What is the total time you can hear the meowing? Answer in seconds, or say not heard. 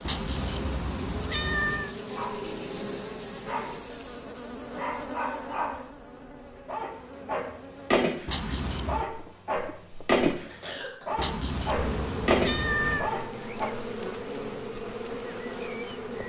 5 s.